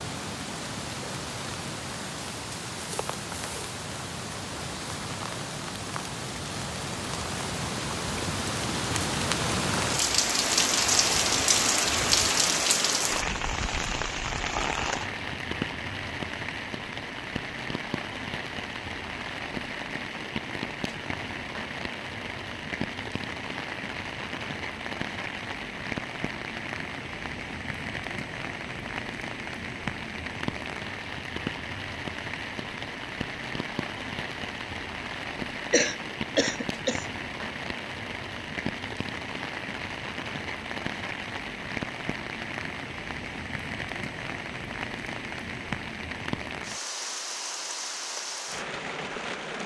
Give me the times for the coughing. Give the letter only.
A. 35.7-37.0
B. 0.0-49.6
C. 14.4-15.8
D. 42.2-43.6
A.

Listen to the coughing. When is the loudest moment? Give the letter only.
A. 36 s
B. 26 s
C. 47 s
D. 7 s
A.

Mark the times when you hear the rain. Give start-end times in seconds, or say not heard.
0.0-49.6.